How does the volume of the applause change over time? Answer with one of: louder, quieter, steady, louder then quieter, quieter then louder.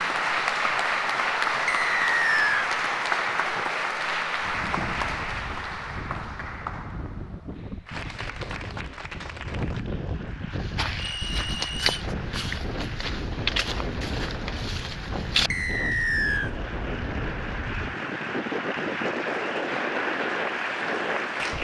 quieter then louder.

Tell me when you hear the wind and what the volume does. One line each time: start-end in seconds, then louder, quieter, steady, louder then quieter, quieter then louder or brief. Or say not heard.
4.3-21.5 louder.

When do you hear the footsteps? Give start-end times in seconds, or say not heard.
10.5-16.1.